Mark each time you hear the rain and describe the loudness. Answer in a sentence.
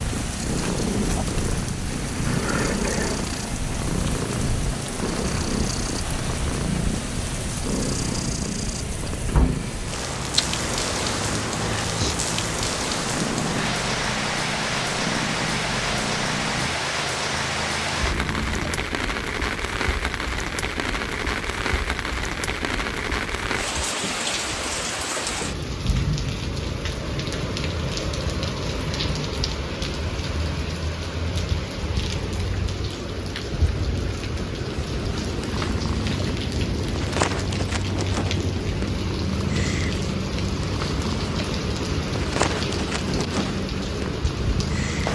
You can hear the rain from 0.0 to 45.1 s, at a steady volume.